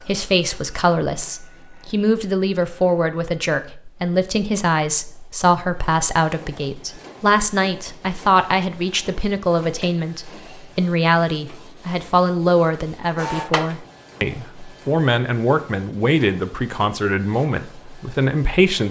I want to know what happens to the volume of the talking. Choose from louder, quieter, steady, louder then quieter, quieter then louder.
steady.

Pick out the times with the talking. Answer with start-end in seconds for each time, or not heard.
0.1-18.8.